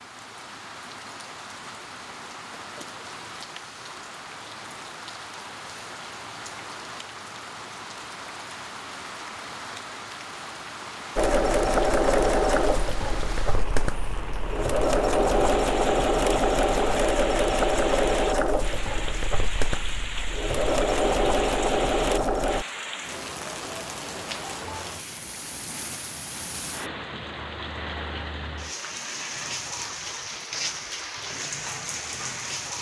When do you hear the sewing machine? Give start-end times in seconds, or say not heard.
11.2-22.6.